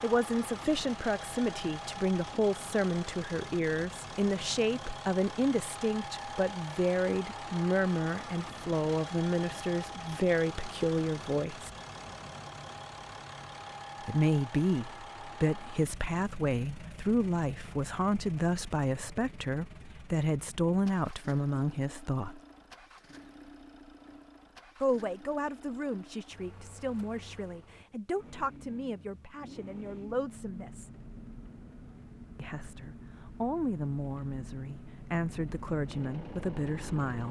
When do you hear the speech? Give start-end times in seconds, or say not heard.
0.0-11.7, 14.0-22.4, 24.8-30.9, 32.4-37.2.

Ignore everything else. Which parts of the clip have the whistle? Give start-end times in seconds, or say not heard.
not heard.